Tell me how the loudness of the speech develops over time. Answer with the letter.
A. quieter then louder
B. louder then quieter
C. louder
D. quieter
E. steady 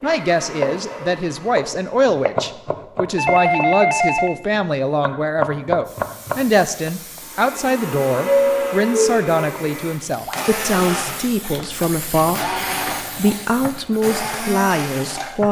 E.